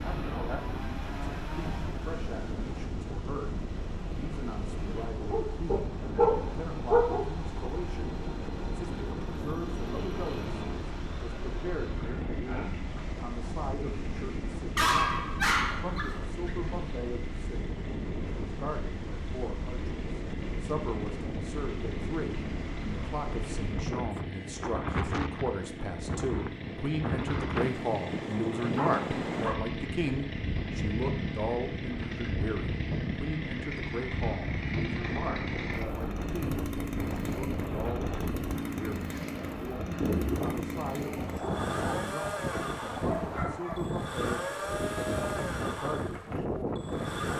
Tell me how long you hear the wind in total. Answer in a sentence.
The wind can be heard for 47 seconds in total.